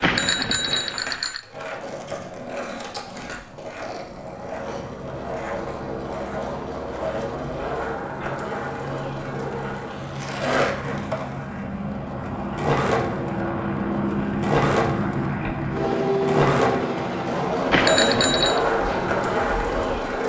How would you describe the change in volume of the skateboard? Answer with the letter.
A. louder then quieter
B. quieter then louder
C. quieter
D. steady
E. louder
E.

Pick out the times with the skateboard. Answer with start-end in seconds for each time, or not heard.
0.0-20.2.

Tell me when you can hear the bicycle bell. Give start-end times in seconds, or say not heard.
0.0-1.4, 17.7-18.6.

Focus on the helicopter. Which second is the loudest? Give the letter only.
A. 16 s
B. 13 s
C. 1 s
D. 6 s
A.